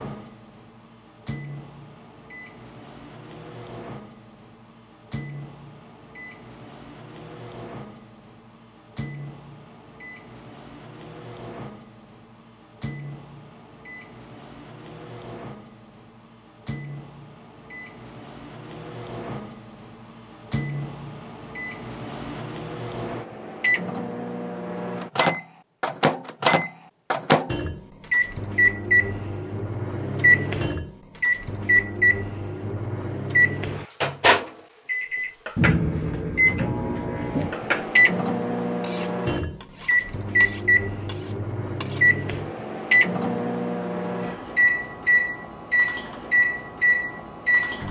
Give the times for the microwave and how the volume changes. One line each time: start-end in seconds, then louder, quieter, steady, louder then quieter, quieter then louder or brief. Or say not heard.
0.0-47.8 louder.